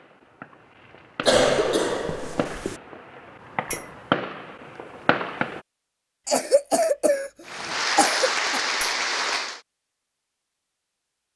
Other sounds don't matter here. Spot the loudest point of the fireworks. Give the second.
4 s.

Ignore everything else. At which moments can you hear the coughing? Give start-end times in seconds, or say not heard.
1.2-2.8, 6.2-8.6.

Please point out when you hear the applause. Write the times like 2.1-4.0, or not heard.
7.5-9.6.